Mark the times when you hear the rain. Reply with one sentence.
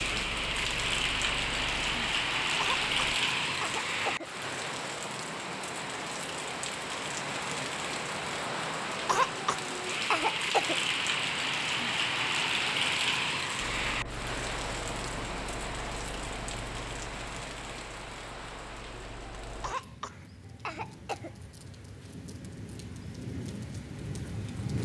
You can hear the rain from 0.0 to 24.8 s.